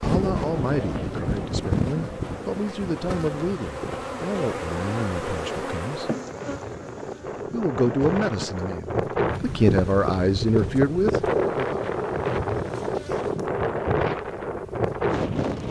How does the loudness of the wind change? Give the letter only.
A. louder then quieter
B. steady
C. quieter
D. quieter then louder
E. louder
D.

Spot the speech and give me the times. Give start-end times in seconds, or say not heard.
0.0-6.1, 7.5-11.8.